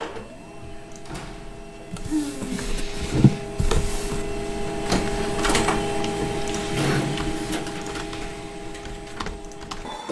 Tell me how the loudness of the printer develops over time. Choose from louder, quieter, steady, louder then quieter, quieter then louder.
louder then quieter.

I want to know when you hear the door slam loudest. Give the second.
7 s.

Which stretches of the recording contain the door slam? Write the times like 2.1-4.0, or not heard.
1.1-1.6, 6.7-7.7.